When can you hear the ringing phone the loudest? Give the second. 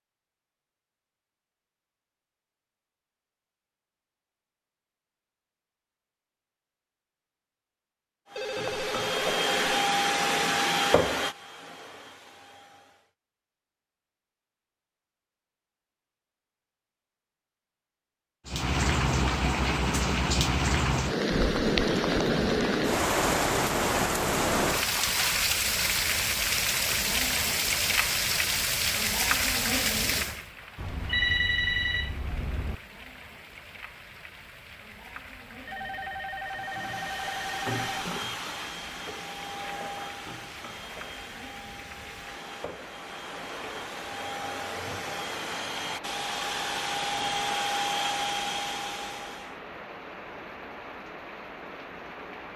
31 s.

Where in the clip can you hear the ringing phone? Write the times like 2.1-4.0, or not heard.
8.3-9.8, 30.8-32.8, 35.6-38.1.